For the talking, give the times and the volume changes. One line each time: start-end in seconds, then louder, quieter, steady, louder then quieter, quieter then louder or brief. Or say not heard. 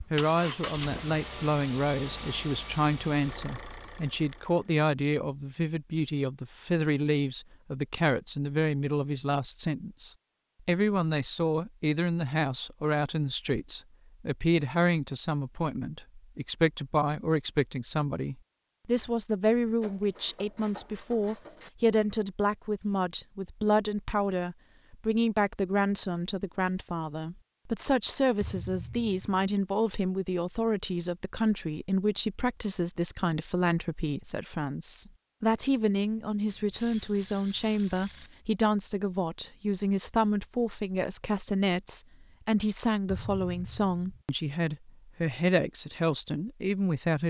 0.1-47.2 steady.